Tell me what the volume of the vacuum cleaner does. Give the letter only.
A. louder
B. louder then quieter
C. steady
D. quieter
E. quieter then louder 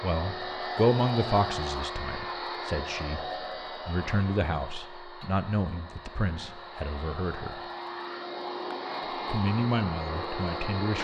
E.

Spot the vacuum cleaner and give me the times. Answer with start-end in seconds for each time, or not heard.
0.0-10.9.